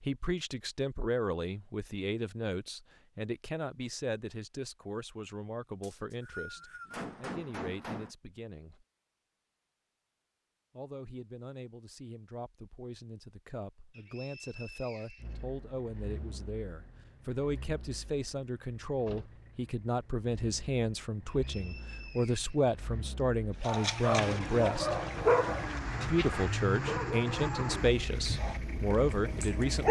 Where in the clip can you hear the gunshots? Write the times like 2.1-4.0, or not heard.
6.9-8.2.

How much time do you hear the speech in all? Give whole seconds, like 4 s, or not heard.
27 s.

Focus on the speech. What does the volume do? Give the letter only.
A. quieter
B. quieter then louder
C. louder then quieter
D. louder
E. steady
B.